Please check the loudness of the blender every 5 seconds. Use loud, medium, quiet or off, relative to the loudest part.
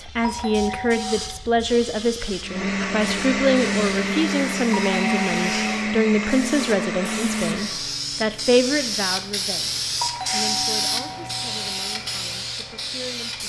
loud, loud, off.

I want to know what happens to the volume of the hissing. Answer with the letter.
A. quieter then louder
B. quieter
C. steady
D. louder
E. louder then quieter
D.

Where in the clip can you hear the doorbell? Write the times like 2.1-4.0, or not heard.
0.2-1.1, 4.7-5.7, 10.0-11.9.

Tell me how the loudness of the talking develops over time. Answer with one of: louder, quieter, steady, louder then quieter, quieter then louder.
quieter.